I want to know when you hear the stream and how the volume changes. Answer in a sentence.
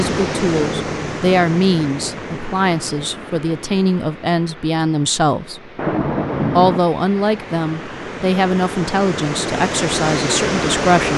The stream can be heard from 0.0 to 11.1 s, getting quieter then louder.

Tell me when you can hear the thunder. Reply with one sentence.
You can hear the thunder from 5.8 to 6.8 s.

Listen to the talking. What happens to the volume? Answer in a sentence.
The loudness of the talking stays about the same.